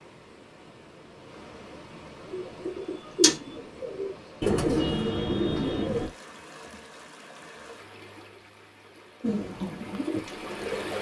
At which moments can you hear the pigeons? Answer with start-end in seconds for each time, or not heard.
2.2-6.1, 9.2-10.9.